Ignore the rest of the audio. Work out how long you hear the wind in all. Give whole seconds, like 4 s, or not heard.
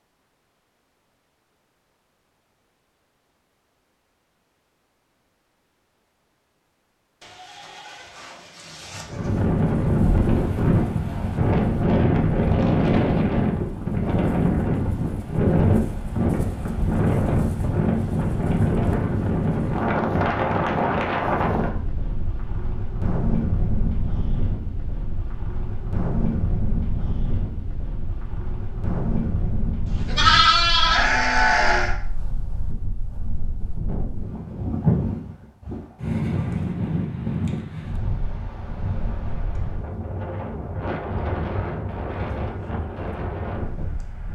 35 s.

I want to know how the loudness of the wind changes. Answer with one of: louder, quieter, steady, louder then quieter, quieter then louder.
quieter.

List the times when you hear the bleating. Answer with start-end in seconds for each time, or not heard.
7.2-9.3, 29.9-31.9.